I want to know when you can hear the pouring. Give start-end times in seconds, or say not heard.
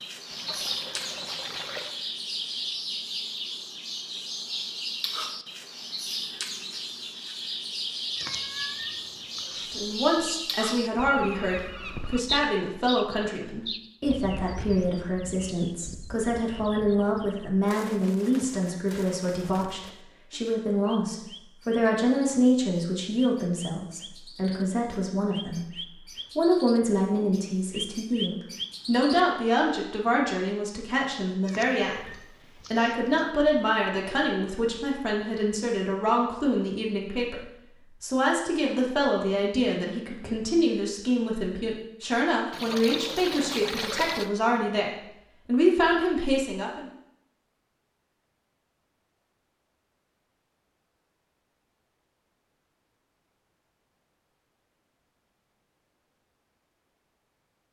0.3-2.0, 42.5-44.3.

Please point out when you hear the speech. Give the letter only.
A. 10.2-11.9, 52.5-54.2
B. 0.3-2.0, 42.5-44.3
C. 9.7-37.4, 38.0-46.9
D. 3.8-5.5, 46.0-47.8
C.